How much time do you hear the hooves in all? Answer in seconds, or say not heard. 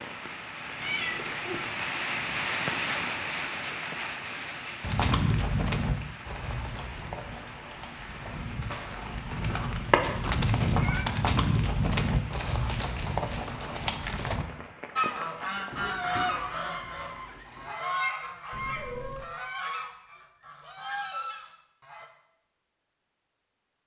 10 s.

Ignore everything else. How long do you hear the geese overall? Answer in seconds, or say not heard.
7 s.